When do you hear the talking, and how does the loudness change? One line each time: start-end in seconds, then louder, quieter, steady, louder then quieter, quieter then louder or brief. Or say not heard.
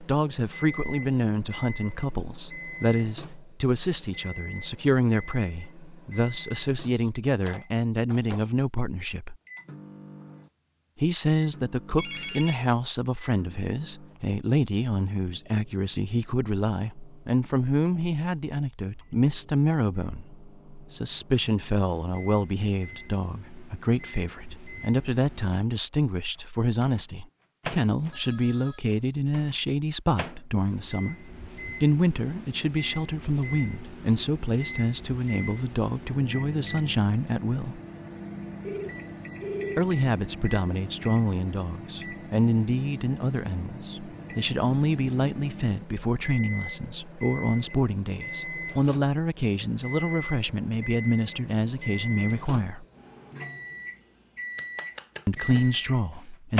0.0-9.3 steady
10.9-37.8 steady
39.8-52.9 steady
55.2-56.5 brief.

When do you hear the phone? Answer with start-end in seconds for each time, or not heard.
11.9-12.8, 28.1-28.9, 38.6-39.9.